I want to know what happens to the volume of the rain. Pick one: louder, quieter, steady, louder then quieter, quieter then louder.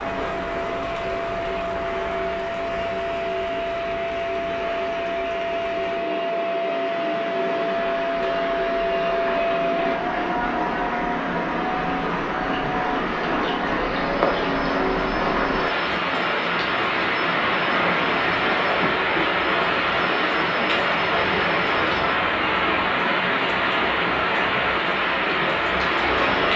louder.